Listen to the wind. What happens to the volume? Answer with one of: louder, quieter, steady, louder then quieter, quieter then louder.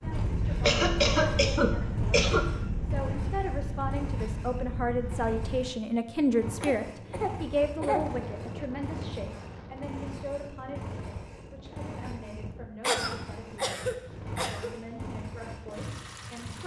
quieter.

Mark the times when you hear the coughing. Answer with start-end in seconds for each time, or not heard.
0.1-2.5, 6.6-8.0, 12.8-14.7.